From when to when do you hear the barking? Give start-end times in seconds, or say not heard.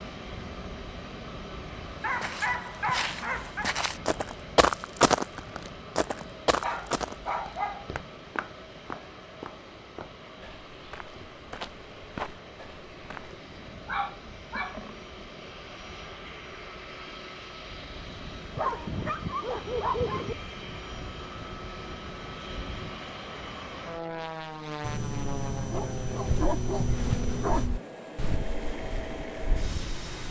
2.0-3.7, 6.6-7.8, 13.8-15.0, 18.6-20.4, 24.8-27.7.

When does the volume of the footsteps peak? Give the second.
5 s.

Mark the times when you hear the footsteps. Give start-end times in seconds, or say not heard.
2.2-13.4, 26.2-29.9.